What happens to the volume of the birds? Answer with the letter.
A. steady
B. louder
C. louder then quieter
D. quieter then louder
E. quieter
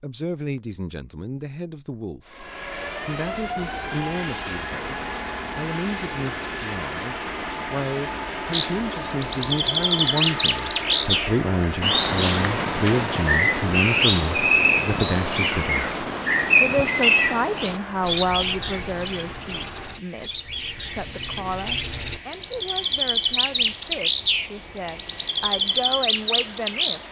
D.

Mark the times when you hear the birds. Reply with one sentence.
The birds can be heard from 8.5 to 27.0 s.